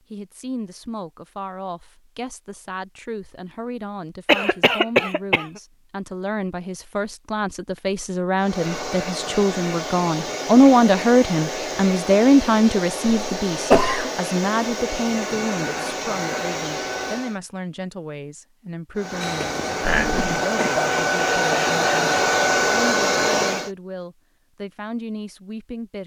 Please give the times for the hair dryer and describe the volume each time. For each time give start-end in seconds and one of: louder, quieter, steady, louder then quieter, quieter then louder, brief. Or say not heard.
8.3-17.4 steady
18.9-23.7 louder.